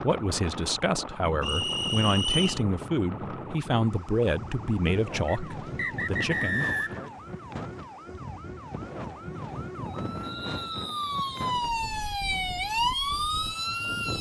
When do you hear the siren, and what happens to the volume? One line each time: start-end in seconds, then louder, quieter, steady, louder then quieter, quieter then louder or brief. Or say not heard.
0.0-14.1 louder.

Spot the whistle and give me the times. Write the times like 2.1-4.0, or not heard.
1.4-2.6, 5.2-7.1, 10.2-11.6.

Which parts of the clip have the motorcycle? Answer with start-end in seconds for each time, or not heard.
not heard.